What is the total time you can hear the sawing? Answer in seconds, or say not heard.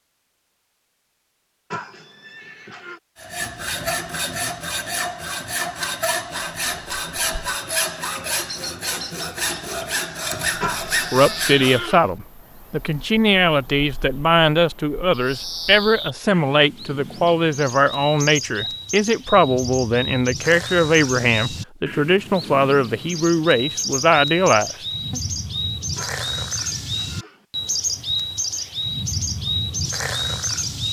9 s.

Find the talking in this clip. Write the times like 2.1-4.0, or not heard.
11.1-25.2.